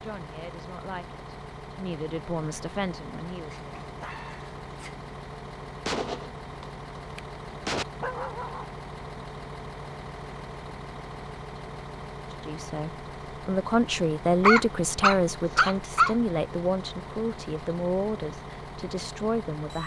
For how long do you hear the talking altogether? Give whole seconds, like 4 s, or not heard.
11 s.